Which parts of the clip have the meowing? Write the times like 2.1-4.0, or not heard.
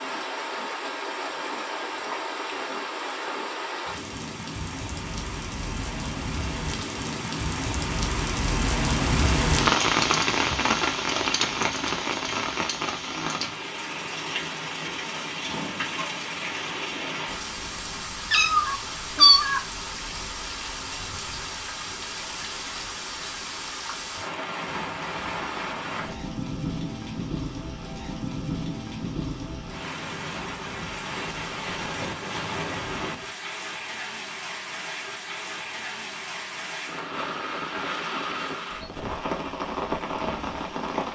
18.3-19.6.